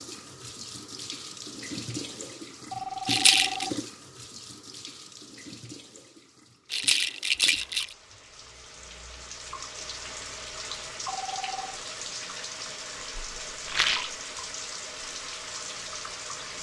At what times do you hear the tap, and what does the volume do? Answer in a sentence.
The tap can be heard from 0.0 to 16.5 s, getting quieter then louder.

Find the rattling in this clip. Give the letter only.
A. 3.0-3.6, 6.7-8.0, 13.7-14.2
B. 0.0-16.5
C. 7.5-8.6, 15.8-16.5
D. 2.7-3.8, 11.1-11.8
A.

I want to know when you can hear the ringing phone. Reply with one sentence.
The ringing phone can be heard from 2.7 to 3.8 s and from 11.1 to 11.8 s.